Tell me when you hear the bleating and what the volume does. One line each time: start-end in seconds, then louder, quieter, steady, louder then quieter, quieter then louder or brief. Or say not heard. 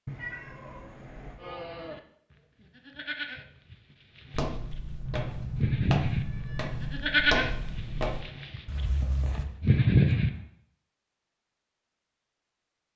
1.4-10.3 quieter then louder.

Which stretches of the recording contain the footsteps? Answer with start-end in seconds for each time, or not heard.
4.3-9.4.